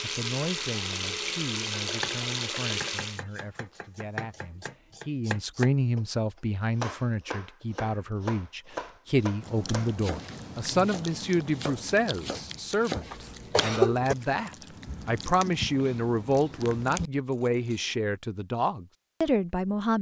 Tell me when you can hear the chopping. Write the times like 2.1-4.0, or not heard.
1.9-6.0, 6.8-13.7.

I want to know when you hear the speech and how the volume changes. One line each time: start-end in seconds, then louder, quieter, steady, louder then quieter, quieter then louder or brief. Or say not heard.
0.0-19.9 louder.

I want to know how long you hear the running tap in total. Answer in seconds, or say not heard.
3 s.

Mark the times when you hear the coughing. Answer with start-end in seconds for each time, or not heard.
13.1-14.2.